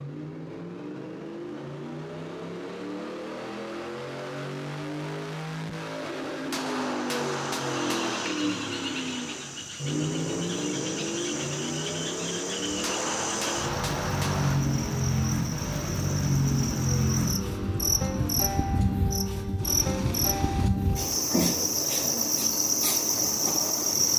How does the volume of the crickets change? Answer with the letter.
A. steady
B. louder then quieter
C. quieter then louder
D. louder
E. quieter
D.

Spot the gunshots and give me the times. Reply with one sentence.
The gunshots can be heard from 6.5 to 8.3 s and from 12.8 to 14.6 s.